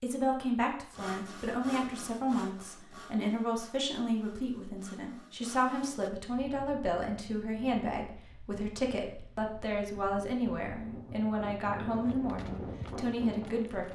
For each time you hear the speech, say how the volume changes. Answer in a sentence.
You can hear the speech from 0.0 to 13.8 s, at a steady volume.